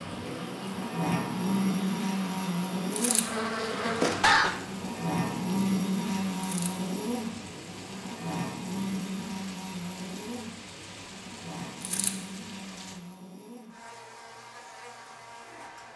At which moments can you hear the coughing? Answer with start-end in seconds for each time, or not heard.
3.8-4.5.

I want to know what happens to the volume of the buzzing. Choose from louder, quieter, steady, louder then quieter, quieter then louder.
quieter.